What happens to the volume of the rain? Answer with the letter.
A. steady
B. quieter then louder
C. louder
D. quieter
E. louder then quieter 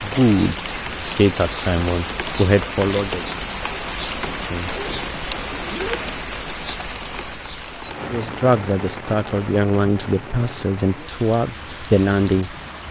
D.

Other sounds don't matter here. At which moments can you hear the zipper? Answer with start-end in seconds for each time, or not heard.
4.2-6.1.